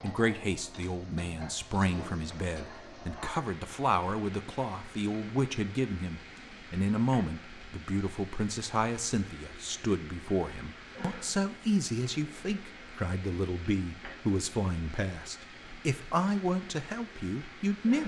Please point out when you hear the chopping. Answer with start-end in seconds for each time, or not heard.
not heard.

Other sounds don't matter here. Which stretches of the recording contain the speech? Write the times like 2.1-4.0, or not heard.
0.0-18.0.